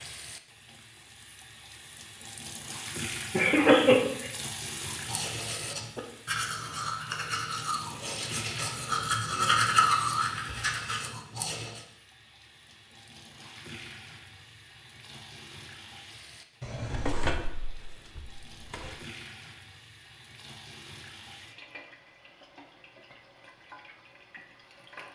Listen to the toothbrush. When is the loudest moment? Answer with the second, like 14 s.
10 s.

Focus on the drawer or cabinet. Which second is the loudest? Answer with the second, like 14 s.
17 s.